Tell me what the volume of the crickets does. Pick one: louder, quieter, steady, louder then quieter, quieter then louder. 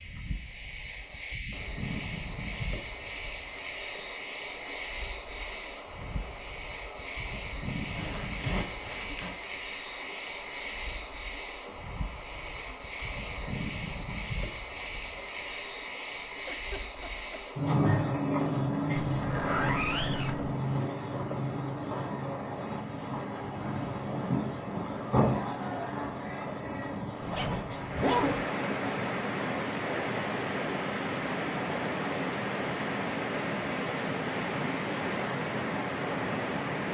steady.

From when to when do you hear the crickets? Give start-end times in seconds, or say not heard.
0.0-28.1.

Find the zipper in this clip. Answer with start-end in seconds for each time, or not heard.
8.0-9.3, 19.1-20.6, 27.2-28.4.